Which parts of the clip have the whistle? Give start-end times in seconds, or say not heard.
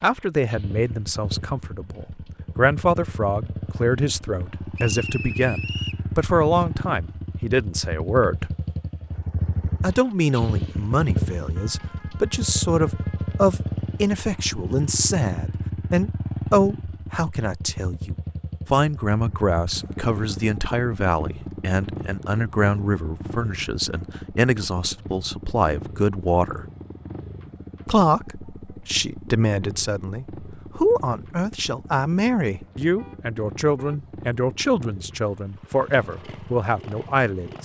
4.8-6.0.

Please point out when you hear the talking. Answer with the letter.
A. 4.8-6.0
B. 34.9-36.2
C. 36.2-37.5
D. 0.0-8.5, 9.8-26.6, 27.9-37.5
D.